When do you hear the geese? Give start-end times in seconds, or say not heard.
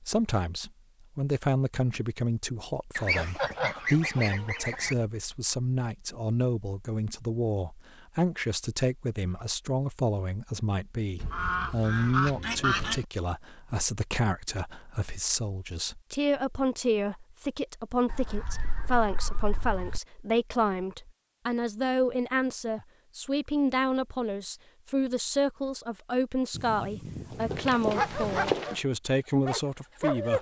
3.0-5.0, 11.2-13.1, 18.1-20.0, 26.5-28.6.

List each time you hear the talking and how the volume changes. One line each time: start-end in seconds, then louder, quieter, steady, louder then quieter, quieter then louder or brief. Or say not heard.
0.0-30.3 steady.